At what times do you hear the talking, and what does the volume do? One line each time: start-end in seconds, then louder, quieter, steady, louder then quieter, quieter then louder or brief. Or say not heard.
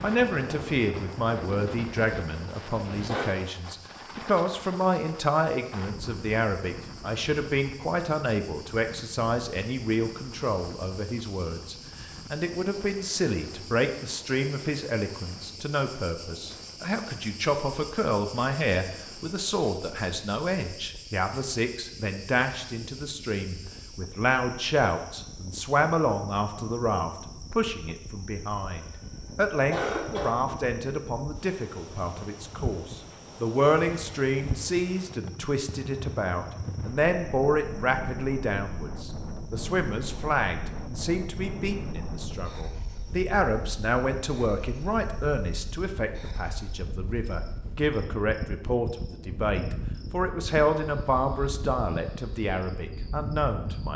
0.0-53.9 steady.